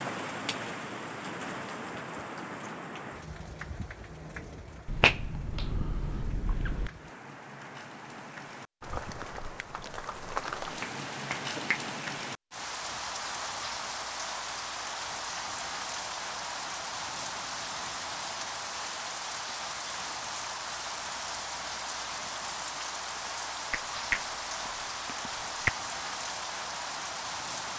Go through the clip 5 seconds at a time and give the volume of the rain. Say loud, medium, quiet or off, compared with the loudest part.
loud, medium, loud, loud, loud, loud.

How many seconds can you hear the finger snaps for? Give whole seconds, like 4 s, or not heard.
5 s.